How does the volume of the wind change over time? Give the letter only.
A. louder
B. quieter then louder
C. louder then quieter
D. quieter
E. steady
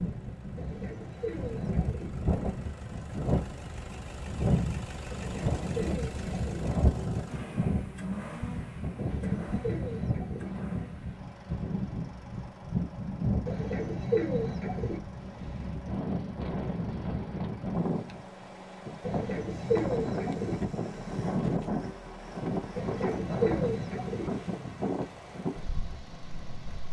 E.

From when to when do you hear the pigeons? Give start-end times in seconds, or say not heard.
0.6-2.1, 5.1-6.7, 8.9-10.5, 13.4-15.0, 19.0-20.6, 22.8-24.3.